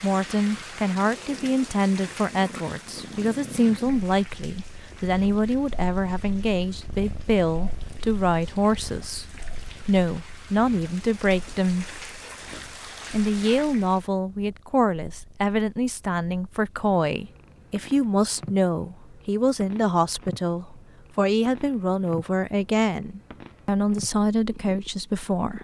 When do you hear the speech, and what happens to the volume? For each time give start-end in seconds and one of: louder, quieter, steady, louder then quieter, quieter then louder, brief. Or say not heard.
0.0-11.8 steady
13.1-25.6 steady.